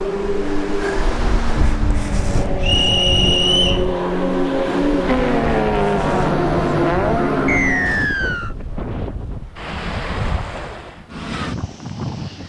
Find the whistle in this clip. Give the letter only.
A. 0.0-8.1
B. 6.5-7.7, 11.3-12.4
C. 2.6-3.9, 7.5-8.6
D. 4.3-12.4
C.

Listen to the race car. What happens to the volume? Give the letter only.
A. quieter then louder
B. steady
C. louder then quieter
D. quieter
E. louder
E.